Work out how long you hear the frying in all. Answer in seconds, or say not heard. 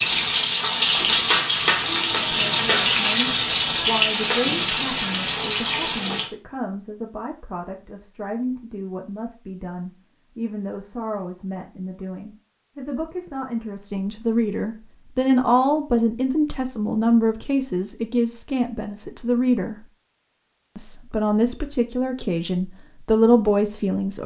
6 s.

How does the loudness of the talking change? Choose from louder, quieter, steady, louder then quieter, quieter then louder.
louder.